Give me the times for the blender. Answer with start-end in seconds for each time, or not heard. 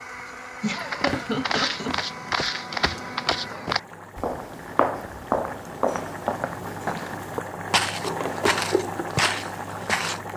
0.0-3.9.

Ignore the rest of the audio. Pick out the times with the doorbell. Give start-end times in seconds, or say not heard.
not heard.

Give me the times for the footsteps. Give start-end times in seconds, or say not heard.
0.7-10.2.